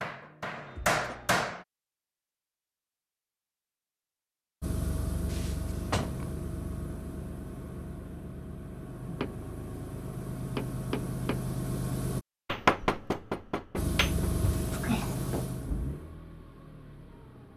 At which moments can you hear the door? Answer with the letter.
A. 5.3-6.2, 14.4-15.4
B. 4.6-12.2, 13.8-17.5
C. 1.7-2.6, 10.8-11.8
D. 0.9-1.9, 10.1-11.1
A.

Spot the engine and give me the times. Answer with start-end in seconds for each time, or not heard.
4.6-12.2, 13.8-17.5.